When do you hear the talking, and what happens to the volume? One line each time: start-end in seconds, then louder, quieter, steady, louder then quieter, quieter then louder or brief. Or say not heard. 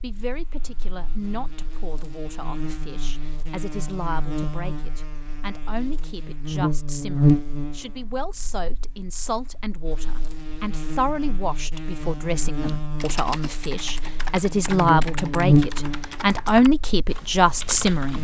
0.0-18.1 louder.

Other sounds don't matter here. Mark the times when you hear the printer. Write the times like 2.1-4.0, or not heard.
not heard.